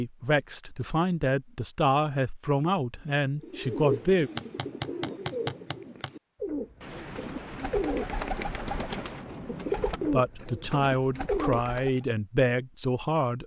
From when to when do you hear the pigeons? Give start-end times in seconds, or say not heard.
3.4-12.0.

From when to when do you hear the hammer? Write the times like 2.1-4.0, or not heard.
4.3-6.1.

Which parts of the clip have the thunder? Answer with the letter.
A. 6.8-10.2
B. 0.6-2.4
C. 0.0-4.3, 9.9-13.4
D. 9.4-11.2
A.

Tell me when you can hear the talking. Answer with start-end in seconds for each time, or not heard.
0.0-4.3, 9.9-13.4.